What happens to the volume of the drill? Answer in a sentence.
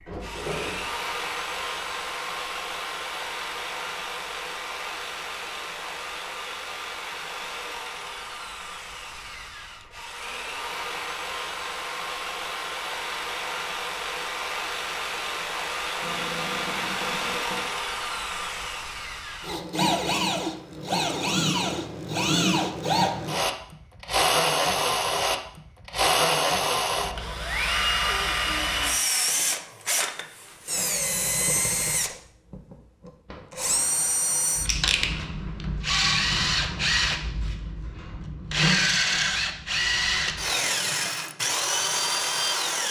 The volume of the drill goes up.